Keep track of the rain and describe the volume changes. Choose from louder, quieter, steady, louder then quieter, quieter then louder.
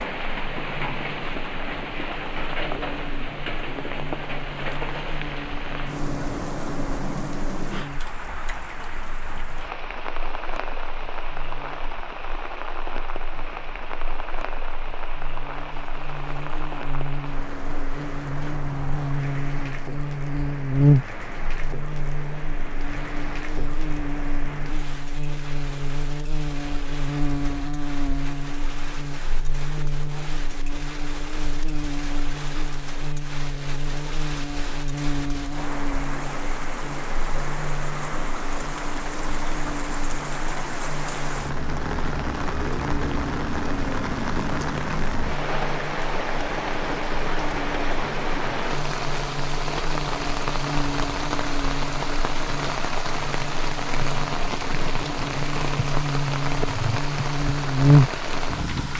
quieter then louder.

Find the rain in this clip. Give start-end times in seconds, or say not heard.
0.0-58.9.